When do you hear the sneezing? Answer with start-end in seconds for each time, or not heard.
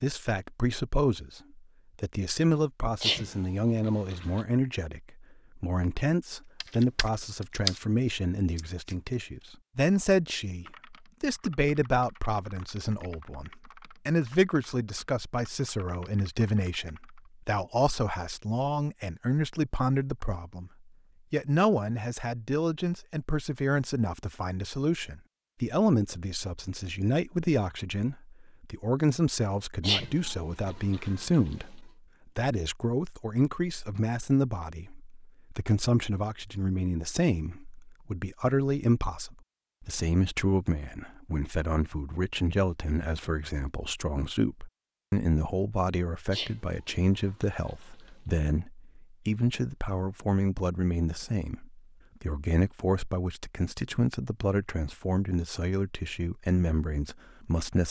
3.0-4.5, 29.8-31.6, 46.3-48.1.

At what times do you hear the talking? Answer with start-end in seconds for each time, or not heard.
0.0-20.7, 21.3-57.8.